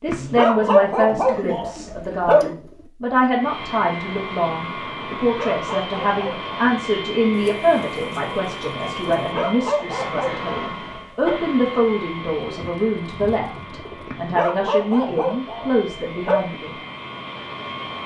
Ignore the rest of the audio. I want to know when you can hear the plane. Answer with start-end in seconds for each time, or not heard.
3.3-18.0.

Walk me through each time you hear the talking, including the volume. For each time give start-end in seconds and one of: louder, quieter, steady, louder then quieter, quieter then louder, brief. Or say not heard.
0.0-16.8 steady.